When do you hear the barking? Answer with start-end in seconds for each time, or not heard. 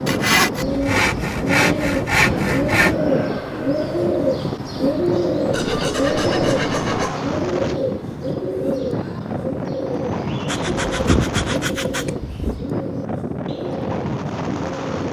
not heard.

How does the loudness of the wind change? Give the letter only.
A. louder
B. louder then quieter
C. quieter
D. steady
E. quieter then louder
D.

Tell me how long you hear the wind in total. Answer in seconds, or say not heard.
15 s.